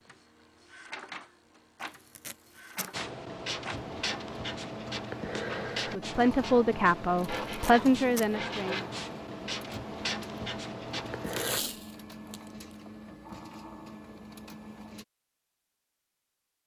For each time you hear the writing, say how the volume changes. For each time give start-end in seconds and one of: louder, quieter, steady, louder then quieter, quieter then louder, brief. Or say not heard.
2.9-11.6 steady.